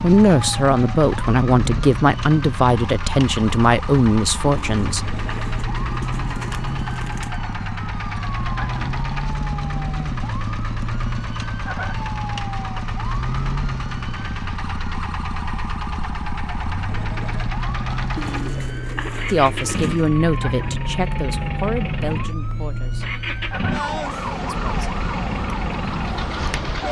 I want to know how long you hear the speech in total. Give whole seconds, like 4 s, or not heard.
9 s.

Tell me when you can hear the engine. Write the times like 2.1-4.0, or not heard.
0.0-26.8.